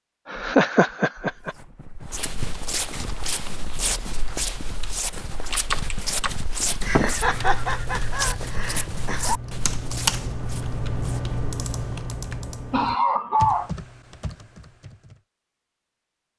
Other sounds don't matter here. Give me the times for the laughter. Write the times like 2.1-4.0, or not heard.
0.3-1.5, 6.8-9.3, 12.7-13.7.